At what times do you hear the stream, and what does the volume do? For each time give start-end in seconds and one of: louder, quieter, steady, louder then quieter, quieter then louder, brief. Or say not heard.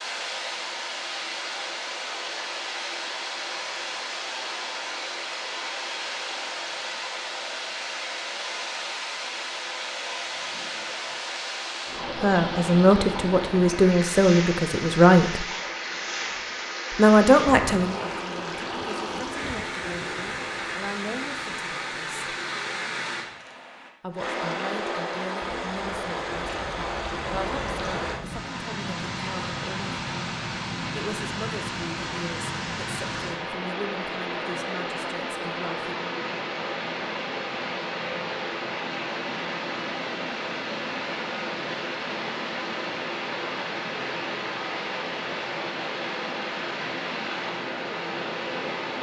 0.0-48.9 steady.